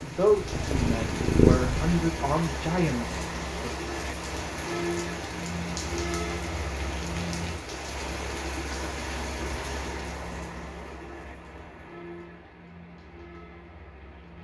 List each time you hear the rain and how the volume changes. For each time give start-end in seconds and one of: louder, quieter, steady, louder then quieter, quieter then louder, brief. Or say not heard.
0.0-14.3 quieter.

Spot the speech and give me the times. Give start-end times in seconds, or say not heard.
0.0-3.8.